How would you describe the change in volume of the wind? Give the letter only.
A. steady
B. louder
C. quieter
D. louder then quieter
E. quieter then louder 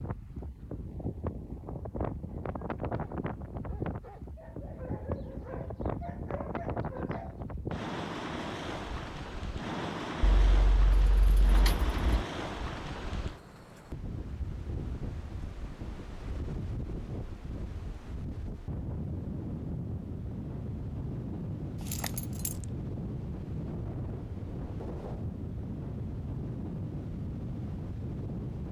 A.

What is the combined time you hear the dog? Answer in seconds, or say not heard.
5 s.